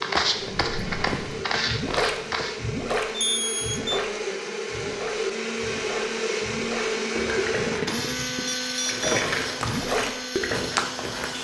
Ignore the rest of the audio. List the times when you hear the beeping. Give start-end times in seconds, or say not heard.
3.1-4.0, 8.4-9.2.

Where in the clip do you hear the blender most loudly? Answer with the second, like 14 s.
7 s.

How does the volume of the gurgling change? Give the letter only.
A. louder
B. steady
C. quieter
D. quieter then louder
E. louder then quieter
D.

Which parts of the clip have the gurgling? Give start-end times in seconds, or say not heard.
0.4-10.8.